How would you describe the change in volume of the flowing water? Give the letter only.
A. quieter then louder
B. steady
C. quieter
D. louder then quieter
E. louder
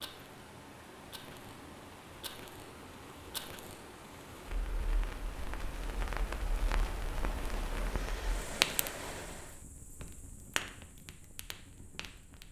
E.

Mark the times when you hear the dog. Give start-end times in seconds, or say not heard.
not heard.